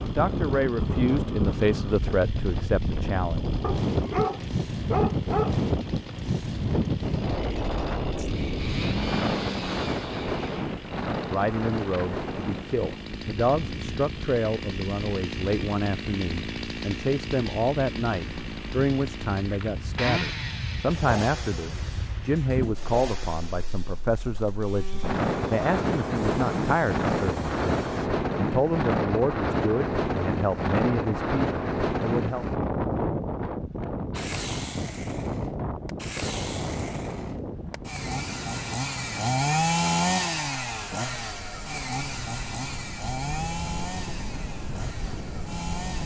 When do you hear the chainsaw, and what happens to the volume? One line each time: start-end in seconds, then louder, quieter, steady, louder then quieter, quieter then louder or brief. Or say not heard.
0.0-28.1 louder then quieter
34.1-46.0 louder then quieter.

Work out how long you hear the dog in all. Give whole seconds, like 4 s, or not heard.
2 s.